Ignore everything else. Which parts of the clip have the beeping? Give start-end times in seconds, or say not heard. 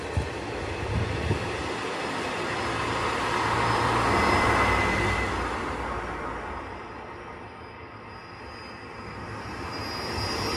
4.1-5.3.